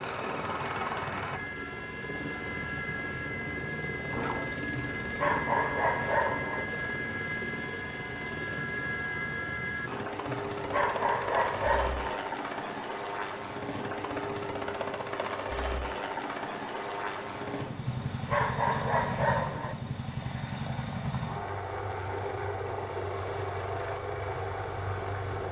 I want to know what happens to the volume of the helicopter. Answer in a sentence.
The loudness of the helicopter stays about the same.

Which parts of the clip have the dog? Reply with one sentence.
The dog can be heard from 4.8 to 6.7 s, from 10.5 to 12.2 s and from 17.9 to 19.8 s.